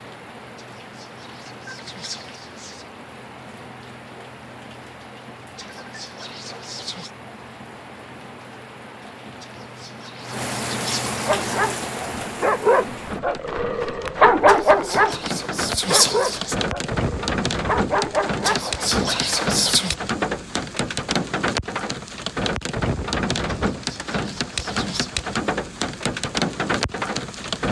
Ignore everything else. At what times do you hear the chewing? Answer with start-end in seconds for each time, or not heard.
not heard.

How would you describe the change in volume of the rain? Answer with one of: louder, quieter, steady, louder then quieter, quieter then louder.
louder.